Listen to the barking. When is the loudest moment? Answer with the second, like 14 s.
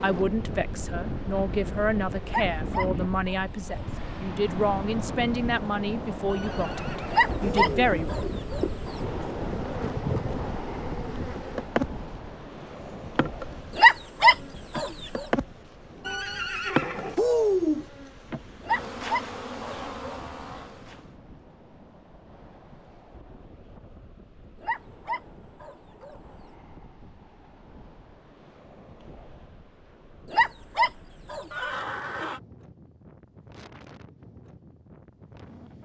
14 s.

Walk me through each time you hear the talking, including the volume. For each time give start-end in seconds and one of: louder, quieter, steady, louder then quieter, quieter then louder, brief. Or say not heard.
0.0-8.1 steady.